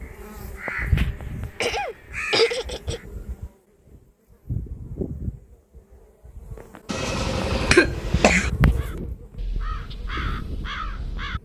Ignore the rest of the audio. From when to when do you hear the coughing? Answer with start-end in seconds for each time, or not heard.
1.6-3.0, 6.8-8.5.